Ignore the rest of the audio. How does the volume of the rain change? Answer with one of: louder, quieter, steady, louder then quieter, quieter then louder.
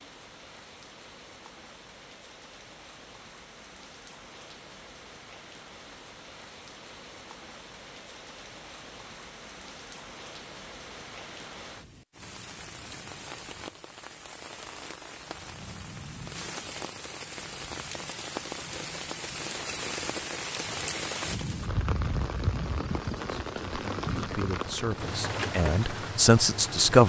louder.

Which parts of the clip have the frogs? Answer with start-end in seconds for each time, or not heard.
not heard.